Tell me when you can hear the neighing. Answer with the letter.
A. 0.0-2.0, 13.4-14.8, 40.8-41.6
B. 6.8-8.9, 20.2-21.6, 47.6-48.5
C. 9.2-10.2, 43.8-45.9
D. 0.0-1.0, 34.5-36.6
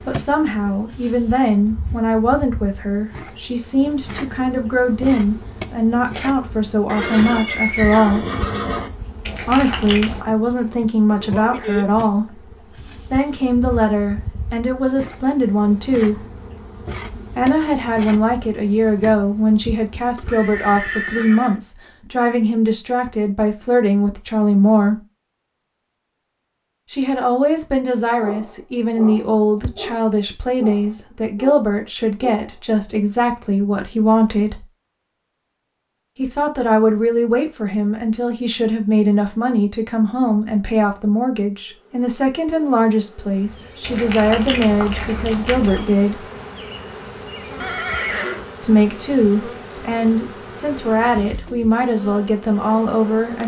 B.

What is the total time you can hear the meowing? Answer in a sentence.
You can hear the meowing for 3 seconds altogether.